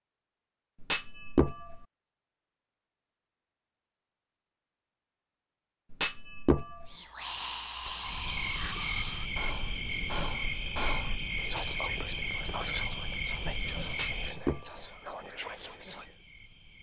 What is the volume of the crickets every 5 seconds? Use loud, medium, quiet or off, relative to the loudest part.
off, loud, loud, quiet.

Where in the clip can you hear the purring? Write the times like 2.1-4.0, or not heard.
not heard.